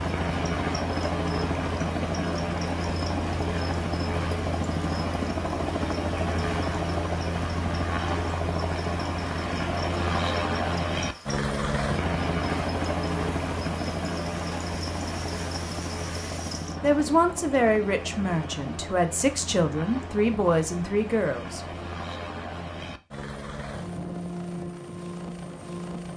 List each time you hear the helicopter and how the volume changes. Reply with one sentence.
You can hear the helicopter from 0.0 to 26.1 s, getting quieter.